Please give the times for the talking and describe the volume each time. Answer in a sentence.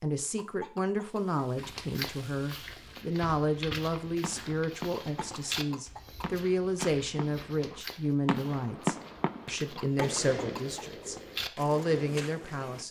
The talking can be heard from 0.0 to 12.8 s, at a steady volume.